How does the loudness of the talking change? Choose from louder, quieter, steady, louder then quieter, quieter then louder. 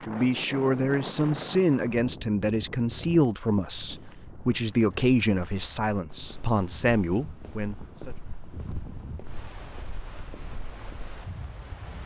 steady.